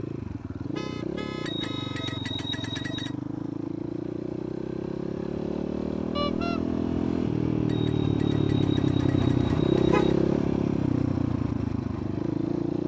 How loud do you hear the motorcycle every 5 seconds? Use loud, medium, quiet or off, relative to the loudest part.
medium, loud, loud.